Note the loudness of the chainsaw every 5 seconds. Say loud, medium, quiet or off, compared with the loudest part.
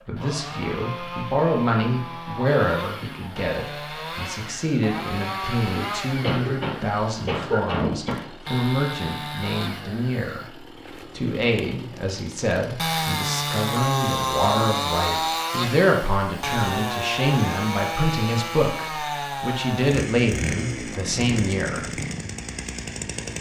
medium, medium, loud, loud, loud.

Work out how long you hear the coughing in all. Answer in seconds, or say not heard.
2 s.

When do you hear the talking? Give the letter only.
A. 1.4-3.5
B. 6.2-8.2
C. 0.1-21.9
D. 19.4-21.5
C.